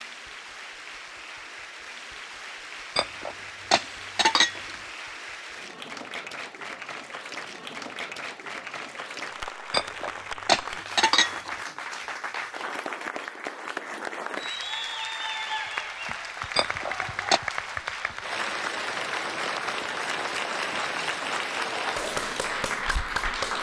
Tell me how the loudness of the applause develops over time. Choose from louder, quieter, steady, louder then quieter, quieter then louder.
louder.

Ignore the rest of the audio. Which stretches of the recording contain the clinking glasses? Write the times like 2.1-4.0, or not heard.
3.0-4.8, 9.7-11.6, 16.6-17.4.